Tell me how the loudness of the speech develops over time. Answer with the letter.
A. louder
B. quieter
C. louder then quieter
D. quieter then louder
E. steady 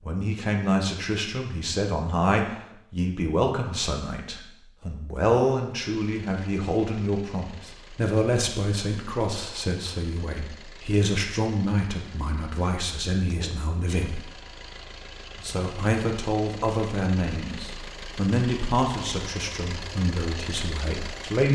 E.